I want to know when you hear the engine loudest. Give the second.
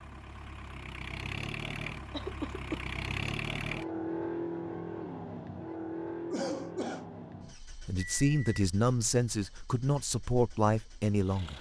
4 s.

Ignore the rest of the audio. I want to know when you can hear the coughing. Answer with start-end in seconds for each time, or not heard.
2.1-2.9, 6.3-7.0.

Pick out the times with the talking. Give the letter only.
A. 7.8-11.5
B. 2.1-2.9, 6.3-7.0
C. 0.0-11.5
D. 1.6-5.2
A.